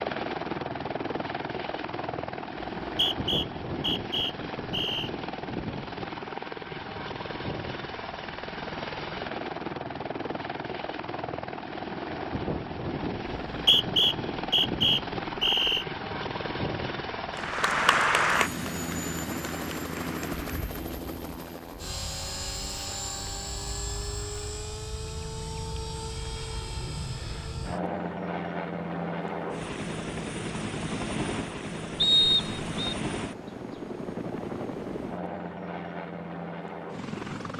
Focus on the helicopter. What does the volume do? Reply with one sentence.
The volume of the helicopter stays about the same.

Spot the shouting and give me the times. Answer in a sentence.
You can't hear the shouting here.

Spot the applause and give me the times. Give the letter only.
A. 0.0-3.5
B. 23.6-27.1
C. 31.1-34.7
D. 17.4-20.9
D.